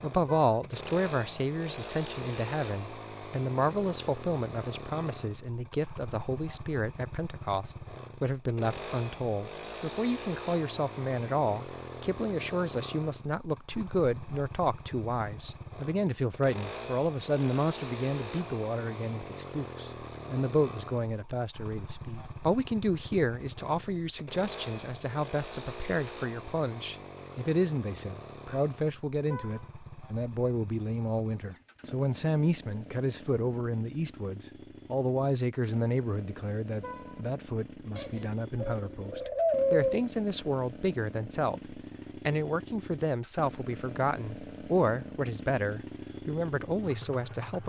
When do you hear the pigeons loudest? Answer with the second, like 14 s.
40 s.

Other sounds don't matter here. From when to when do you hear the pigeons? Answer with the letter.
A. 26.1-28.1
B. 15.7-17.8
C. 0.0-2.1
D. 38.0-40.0
D.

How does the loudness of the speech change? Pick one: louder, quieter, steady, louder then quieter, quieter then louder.
steady.